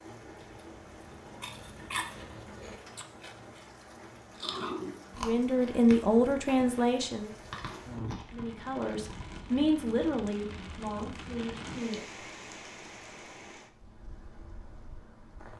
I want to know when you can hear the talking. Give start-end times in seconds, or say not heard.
5.2-7.3, 8.3-12.1.